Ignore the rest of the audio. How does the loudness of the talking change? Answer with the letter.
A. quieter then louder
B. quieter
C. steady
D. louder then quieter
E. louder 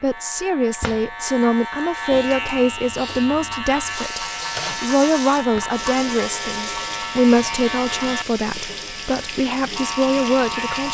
C.